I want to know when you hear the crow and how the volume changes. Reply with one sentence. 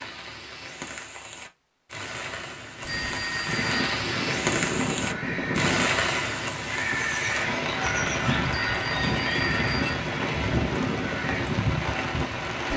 You can hear the crow from 3.5 to 11.5 s, at a steady volume.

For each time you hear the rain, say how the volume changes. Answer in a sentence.
You can hear the rain from 0.0 to 12.7 s, getting louder.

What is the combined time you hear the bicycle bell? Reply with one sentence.
You can hear the bicycle bell for 2 seconds altogether.